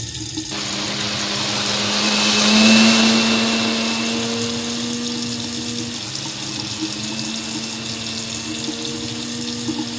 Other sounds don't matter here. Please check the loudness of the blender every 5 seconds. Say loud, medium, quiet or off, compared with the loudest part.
loud, quiet.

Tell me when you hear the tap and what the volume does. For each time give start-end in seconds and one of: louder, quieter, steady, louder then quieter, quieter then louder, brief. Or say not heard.
0.0-9.9 steady.